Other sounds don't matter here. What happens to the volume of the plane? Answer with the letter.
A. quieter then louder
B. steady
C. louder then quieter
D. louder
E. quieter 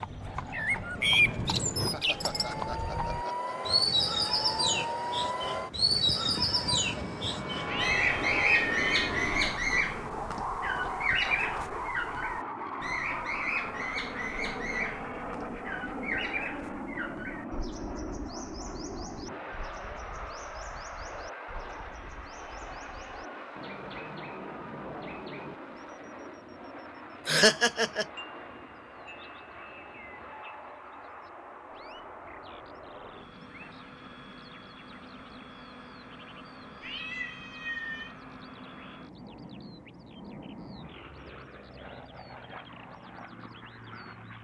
E.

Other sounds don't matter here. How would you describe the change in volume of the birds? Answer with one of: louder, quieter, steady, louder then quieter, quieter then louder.
quieter.